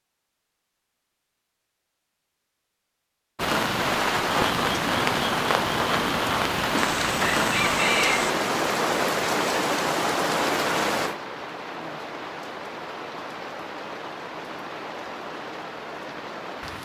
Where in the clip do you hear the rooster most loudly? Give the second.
8 s.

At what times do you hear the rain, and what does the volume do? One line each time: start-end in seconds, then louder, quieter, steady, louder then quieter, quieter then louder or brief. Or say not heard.
3.4-16.8 quieter.